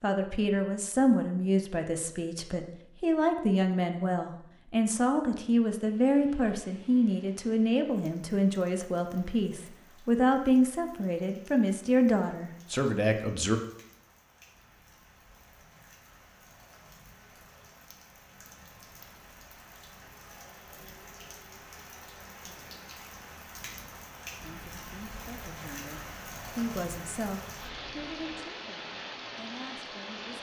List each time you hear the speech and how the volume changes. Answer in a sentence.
The speech can be heard from 0.0 to 13.6 s, at a steady volume; and from 24.4 to 30.3 s, getting louder then quieter.